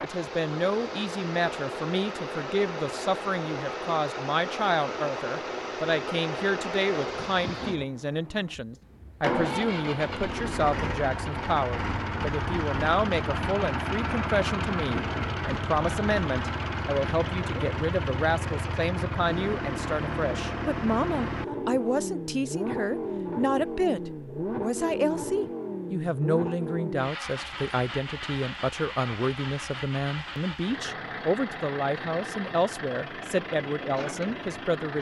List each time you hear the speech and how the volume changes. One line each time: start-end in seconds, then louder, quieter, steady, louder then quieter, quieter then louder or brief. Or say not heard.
0.0-34.9 steady.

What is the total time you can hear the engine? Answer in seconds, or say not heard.
35 s.